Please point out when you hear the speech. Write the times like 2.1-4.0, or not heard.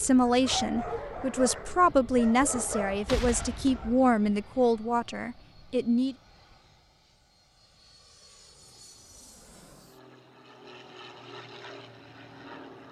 0.0-6.2.